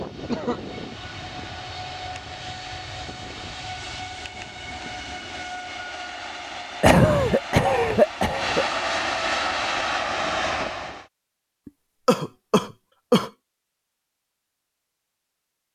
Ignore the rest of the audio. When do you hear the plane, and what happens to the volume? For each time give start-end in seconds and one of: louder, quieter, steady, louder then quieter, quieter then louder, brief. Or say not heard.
0.0-11.1 louder.